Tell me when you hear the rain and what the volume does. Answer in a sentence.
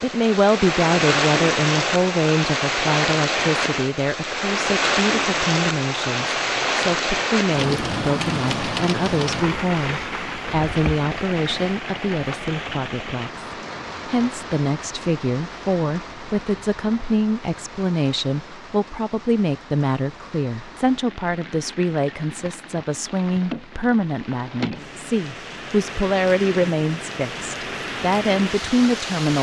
You can hear the rain from 0.0 to 29.3 s, getting quieter then louder.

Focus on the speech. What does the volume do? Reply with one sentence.
The volume of the speech stays about the same.